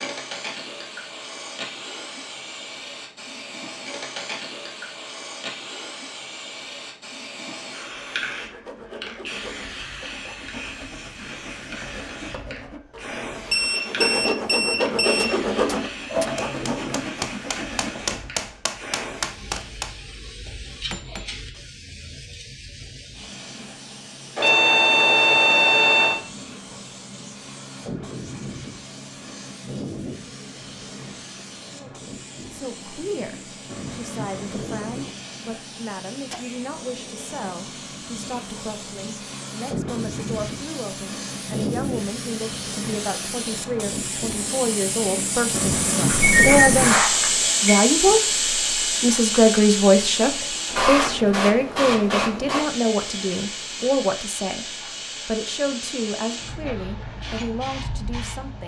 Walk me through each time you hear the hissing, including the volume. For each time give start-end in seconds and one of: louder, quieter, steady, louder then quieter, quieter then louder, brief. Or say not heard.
0.0-58.6 louder.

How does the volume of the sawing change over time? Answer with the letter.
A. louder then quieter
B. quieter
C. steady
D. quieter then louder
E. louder
A.